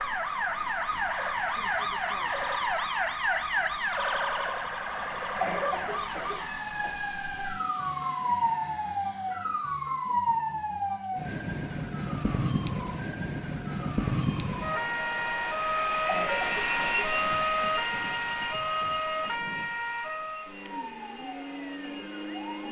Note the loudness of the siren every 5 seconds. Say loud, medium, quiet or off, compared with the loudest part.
loud, loud, loud, loud, medium.